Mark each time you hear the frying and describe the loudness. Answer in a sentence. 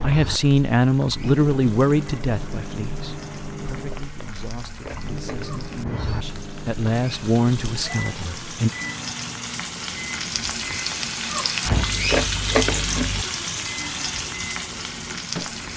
The frying can be heard from 0.0 to 15.7 s, getting louder.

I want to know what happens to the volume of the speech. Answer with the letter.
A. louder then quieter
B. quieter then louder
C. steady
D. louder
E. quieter
B.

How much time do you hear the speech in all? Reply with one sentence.
You can hear the speech for 9 seconds altogether.